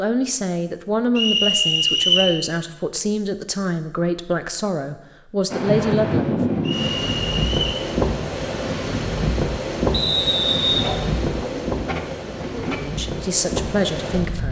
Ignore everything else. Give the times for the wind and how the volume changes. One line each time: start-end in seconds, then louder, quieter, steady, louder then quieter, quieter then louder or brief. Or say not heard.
5.5-14.4 quieter.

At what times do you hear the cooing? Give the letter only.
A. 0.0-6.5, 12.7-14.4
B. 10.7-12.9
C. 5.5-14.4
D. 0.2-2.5
B.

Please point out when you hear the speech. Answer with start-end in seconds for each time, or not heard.
0.0-6.5, 12.7-14.4.